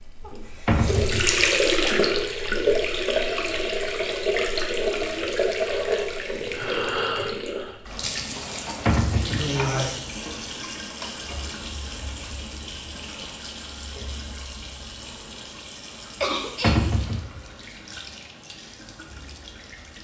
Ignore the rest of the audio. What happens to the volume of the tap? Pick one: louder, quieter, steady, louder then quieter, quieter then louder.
quieter.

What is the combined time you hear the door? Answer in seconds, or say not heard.
2 s.